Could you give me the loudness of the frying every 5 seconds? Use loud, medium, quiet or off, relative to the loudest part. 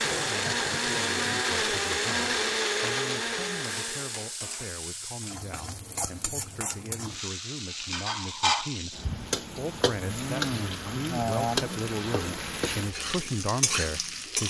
medium, loud, loud.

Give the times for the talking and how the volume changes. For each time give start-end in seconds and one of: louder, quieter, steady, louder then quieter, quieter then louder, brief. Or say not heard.
0.0-14.4 louder.